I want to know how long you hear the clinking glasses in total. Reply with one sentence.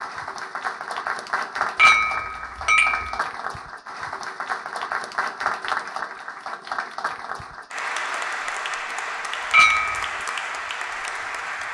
The clinking glasses can be heard for 2 seconds in total.